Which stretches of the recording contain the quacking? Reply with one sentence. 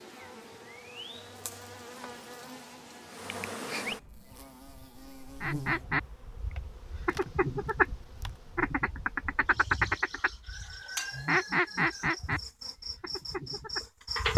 You can hear the quacking from 5.4 to 13.8 s.